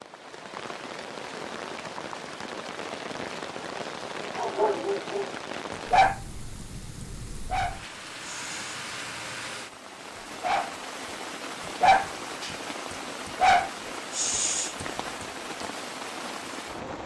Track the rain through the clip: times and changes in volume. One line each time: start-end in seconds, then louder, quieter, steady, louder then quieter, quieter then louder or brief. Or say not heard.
0.0-17.0 steady.